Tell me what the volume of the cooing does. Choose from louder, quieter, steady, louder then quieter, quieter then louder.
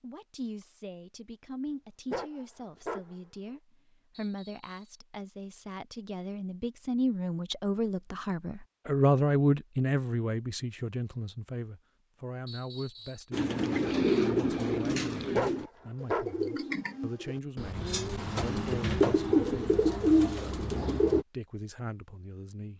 quieter then louder.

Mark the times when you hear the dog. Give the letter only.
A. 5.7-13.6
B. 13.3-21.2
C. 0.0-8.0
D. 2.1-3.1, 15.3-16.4
D.